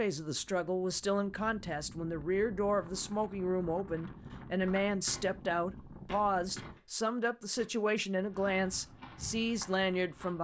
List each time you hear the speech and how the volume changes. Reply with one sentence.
The speech can be heard from 0.0 to 10.3 s, at a steady volume.